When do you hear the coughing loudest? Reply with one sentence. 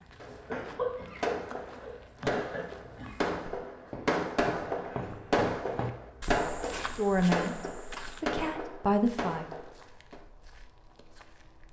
The loudest moment of the coughing is at 1 second.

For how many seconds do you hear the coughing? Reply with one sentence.
The coughing can be heard for 3 seconds in total.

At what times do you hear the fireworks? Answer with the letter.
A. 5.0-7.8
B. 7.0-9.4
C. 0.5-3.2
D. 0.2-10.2
D.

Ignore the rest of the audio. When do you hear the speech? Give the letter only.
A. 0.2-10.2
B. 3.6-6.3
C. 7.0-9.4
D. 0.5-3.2
C.